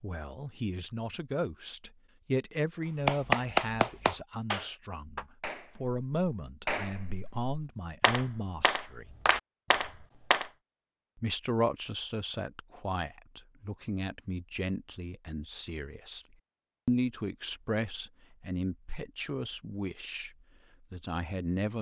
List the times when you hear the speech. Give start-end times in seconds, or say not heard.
0.0-9.1, 11.2-16.2, 16.9-20.3, 20.9-21.7.